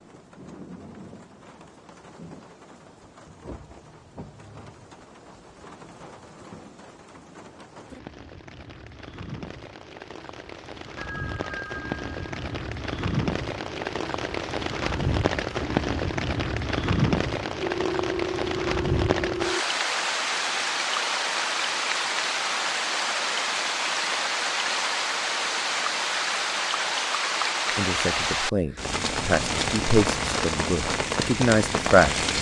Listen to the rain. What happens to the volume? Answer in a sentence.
The volume of the rain goes up.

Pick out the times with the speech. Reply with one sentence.
The speech can be heard from 27.8 to 32.2 s.